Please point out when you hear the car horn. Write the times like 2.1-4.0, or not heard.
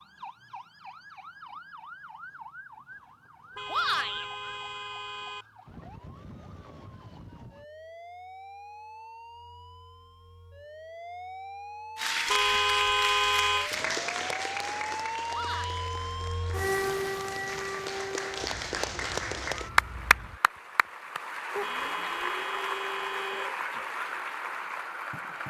3.5-5.5, 12.2-13.7, 21.6-23.5.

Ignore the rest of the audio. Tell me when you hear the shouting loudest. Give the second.
4 s.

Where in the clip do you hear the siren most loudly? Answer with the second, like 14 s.
17 s.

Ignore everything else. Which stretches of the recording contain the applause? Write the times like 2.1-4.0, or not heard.
11.9-25.4.